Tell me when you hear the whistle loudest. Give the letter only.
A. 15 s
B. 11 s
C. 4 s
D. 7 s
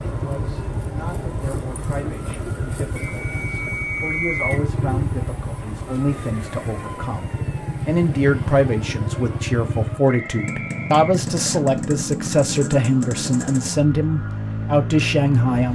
C.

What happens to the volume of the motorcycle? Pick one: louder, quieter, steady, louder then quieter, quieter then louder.
steady.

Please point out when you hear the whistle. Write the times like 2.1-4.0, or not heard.
3.0-4.7, 10.1-11.6.